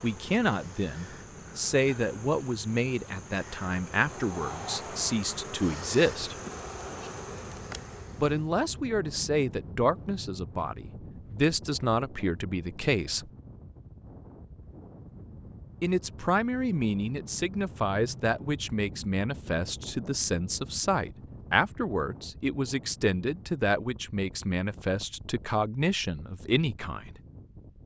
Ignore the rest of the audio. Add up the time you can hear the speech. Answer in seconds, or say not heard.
23 s.